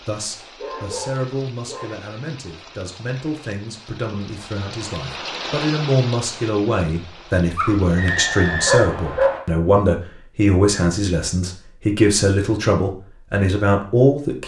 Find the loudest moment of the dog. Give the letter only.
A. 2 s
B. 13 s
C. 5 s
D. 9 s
D.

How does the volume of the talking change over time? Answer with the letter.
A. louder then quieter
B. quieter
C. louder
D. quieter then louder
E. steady
C.